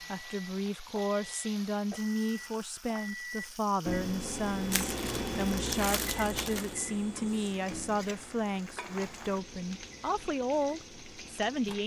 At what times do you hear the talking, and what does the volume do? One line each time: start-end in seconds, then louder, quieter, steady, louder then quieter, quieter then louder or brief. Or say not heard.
0.1-11.8 steady.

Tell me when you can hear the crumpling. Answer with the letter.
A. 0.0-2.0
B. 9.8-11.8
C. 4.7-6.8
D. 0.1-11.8
C.